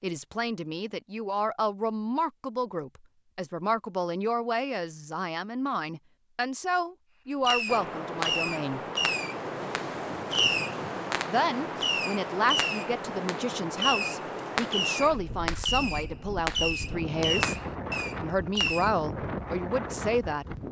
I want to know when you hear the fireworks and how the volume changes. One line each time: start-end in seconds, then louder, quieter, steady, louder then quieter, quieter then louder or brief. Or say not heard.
7.5-18.9 steady.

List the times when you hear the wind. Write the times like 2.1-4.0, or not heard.
7.7-20.6.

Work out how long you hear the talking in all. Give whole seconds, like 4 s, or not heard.
17 s.